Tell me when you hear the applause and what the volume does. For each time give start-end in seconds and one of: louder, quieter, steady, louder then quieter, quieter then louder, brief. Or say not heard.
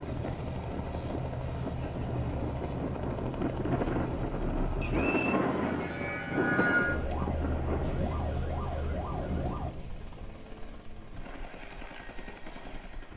not heard.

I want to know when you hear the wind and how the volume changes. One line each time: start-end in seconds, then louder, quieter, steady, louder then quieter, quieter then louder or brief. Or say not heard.
0.0-13.1 louder then quieter.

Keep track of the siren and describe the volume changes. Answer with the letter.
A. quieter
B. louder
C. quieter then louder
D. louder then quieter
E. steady
D.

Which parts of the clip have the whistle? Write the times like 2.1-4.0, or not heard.
4.8-5.5.